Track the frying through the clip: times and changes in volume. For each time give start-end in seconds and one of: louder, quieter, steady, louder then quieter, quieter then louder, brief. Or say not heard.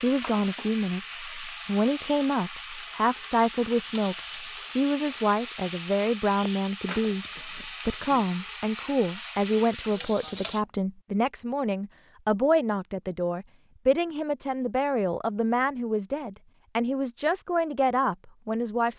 0.0-10.6 steady.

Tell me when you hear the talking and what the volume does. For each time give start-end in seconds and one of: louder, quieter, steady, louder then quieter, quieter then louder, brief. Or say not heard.
0.0-18.9 steady.